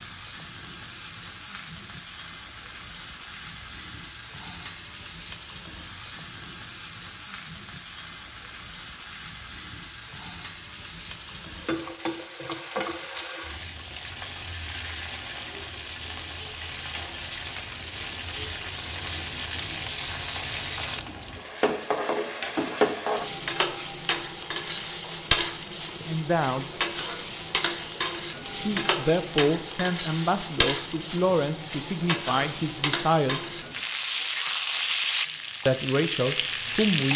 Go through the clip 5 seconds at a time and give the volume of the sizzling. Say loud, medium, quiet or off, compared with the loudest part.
medium, medium, medium, medium, loud, loud, loud, loud.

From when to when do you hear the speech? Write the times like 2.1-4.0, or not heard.
26.1-26.8, 28.6-33.5, 35.6-37.1.